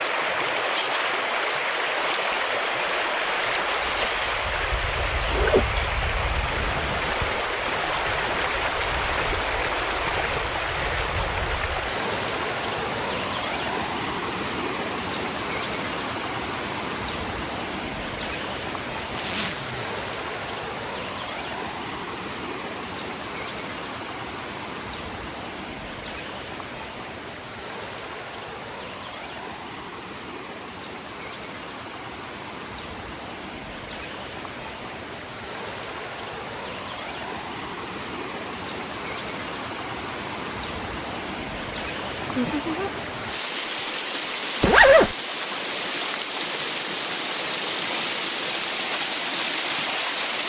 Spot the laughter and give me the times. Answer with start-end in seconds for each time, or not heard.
42.2-42.9.